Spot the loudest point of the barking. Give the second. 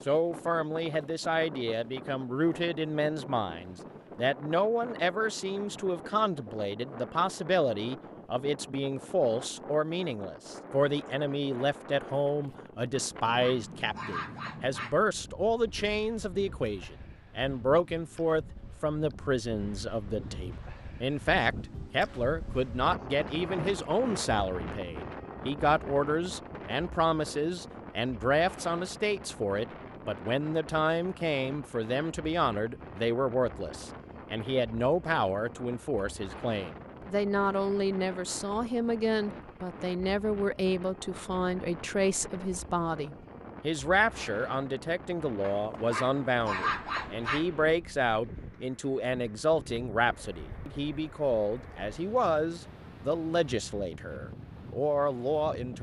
47 s.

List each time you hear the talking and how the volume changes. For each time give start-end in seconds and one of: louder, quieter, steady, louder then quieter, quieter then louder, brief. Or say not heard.
0.1-55.7 steady.